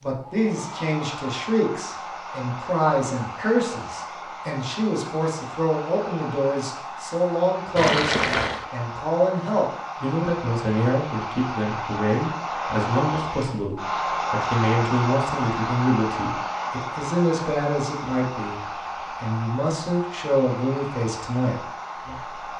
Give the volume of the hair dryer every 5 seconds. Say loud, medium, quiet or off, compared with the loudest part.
medium, medium, loud, loud, medium.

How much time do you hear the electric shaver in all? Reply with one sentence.
You can't hear the electric shaver here.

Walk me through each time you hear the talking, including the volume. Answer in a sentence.
You can hear the talking from 0.0 to 22.5 s, at a steady volume.